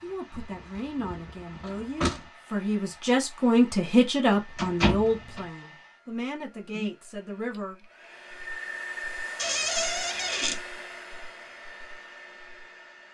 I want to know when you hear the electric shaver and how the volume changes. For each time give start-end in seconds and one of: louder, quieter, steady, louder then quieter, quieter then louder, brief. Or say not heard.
not heard.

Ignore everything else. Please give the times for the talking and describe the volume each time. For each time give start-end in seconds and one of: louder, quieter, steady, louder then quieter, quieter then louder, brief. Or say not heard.
0.0-7.8 louder then quieter.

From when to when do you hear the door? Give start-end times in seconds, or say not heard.
0.3-2.2, 4.5-5.5, 9.3-10.6.